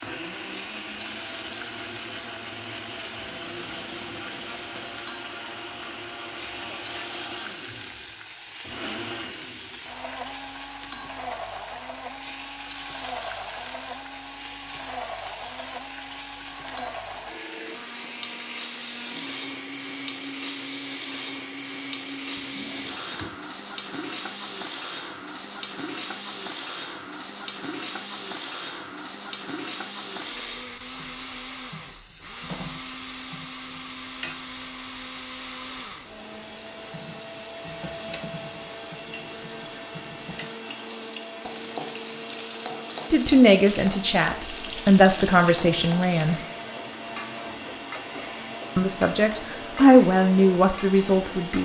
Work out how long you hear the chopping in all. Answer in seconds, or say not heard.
not heard.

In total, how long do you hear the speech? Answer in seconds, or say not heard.
6 s.